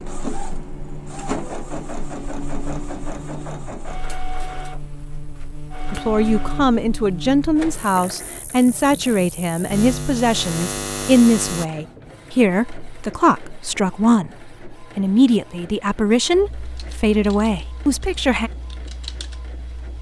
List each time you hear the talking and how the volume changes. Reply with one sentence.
You can hear the talking from 5.9 to 18.5 s, at a steady volume.